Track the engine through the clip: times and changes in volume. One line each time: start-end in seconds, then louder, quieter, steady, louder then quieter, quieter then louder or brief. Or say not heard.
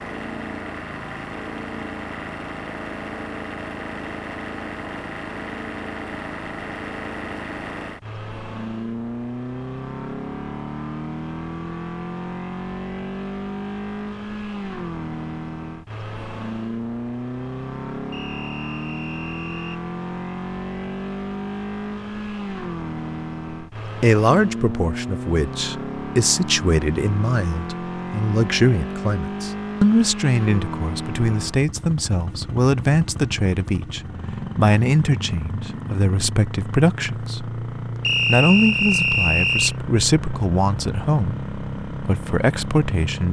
0.0-43.2 steady.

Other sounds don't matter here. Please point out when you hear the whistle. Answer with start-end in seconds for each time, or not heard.
18.1-19.8, 38.0-39.8.